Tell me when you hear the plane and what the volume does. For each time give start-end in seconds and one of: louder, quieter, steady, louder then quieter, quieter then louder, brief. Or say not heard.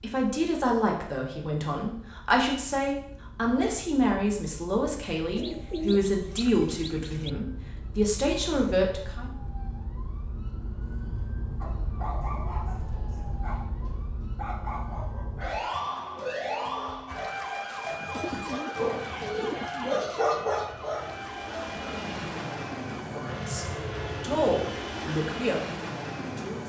18.7-26.6 louder.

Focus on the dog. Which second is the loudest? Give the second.
20 s.